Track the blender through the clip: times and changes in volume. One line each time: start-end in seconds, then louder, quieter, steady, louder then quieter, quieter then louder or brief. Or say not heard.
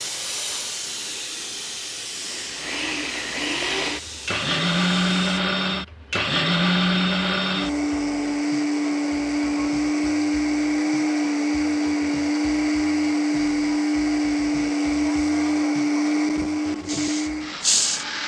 2.2-18.2 steady.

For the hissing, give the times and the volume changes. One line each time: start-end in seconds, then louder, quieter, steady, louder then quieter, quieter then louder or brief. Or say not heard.
0.0-5.4 quieter
16.8-18.2 brief.